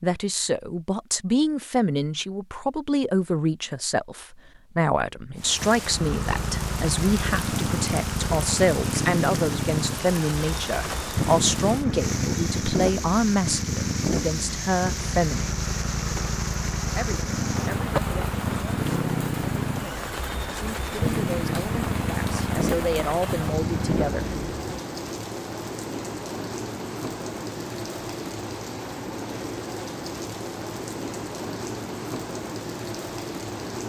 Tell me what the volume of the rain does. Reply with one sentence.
The loudness of the rain stays about the same.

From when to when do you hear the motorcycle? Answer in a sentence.
The motorcycle can be heard from 5.8 to 24.8 s.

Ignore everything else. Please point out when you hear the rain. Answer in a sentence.
The rain can be heard from 5.3 to 33.8 s.